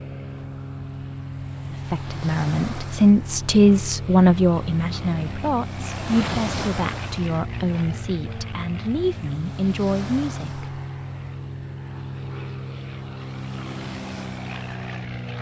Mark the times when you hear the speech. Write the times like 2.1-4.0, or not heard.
1.7-10.7.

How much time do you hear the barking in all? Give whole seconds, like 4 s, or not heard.
not heard.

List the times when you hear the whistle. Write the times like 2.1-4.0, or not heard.
not heard.